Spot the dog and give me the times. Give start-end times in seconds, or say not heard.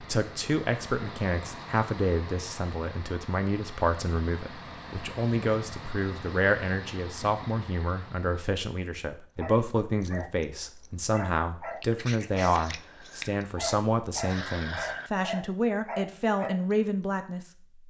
9.3-16.8.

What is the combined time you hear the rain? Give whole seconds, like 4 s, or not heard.
not heard.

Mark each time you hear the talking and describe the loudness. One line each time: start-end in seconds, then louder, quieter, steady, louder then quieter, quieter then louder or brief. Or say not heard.
0.0-17.5 steady.